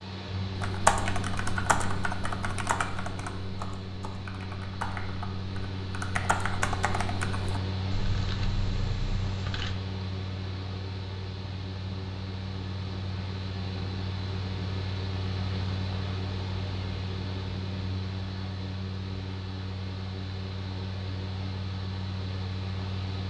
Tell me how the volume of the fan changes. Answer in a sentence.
The loudness of the fan stays about the same.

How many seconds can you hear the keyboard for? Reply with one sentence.
You can hear the keyboard for 9 seconds altogether.